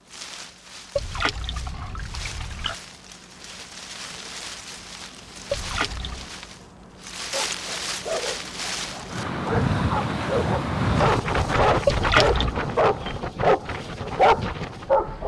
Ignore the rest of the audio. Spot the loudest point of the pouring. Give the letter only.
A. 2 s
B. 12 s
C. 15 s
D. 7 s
B.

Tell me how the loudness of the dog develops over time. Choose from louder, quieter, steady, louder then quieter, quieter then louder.
louder.